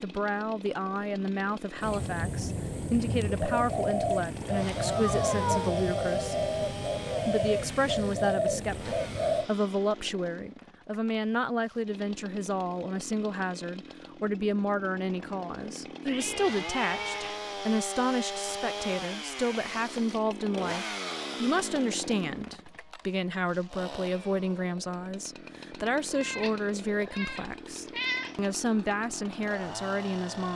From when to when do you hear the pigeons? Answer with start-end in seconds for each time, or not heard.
1.8-9.5.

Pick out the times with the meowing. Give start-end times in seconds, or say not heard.
5.0-5.8, 16.1-17.4, 26.1-28.4.